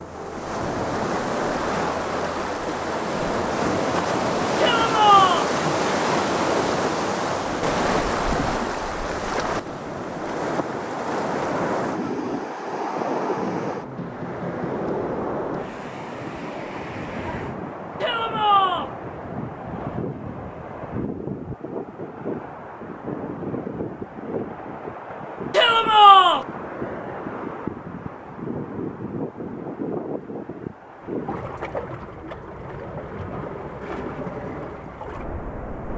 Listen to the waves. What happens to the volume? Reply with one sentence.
The volume of the waves goes down.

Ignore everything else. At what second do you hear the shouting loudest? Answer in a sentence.
The loudest moment of the shouting is at 26 seconds.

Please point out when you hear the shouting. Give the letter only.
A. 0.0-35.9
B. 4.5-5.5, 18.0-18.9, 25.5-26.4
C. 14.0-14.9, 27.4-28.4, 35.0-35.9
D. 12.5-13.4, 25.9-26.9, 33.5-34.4
B.